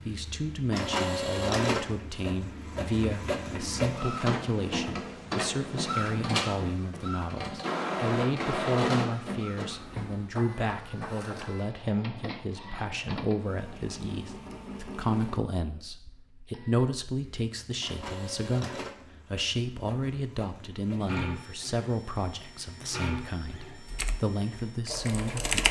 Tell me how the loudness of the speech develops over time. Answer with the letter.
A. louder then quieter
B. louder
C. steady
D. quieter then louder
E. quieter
C.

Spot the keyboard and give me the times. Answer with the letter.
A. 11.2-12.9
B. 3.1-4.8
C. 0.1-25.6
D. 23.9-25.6
D.